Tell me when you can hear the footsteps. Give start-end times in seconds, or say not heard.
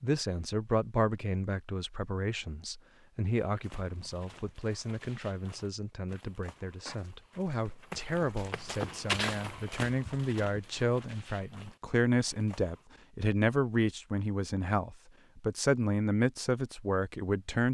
3.3-12.8.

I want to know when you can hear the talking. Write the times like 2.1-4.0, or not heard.
0.0-17.6.